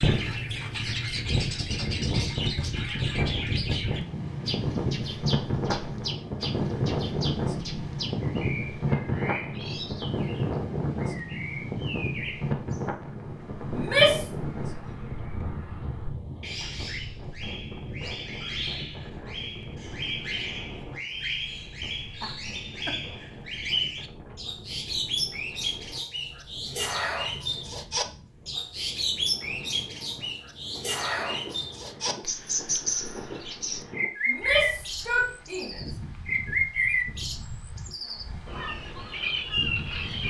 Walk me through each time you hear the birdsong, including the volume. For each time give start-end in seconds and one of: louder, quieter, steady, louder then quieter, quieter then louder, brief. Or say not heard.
0.0-40.2 quieter then louder.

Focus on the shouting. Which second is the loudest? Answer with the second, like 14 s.
14 s.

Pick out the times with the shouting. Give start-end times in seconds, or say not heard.
13.7-14.2, 34.2-35.8.